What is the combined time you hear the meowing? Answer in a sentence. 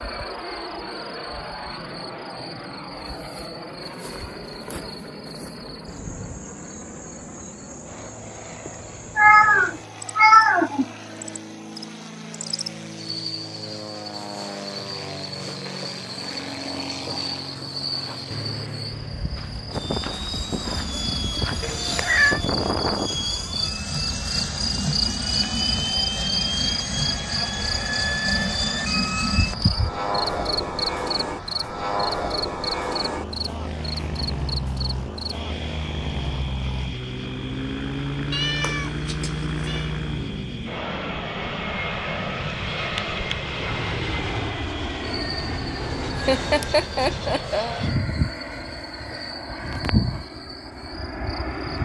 You can hear the meowing for 4 seconds altogether.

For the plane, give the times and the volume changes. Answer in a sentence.
You can hear the plane from 0.0 to 51.8 s, getting louder.